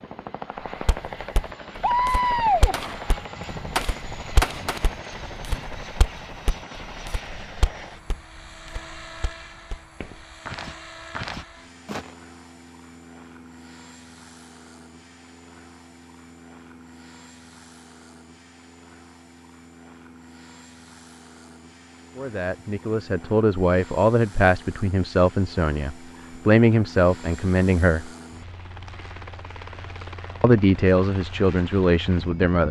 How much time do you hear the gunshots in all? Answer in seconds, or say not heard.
4 s.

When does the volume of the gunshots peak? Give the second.
2 s.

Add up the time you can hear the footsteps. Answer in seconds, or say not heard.
11 s.